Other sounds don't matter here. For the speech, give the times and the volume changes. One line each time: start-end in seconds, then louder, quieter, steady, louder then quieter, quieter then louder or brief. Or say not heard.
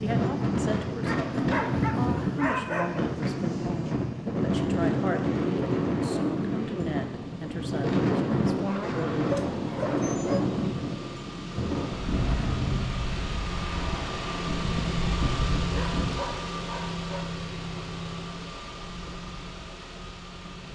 0.0-9.3 steady.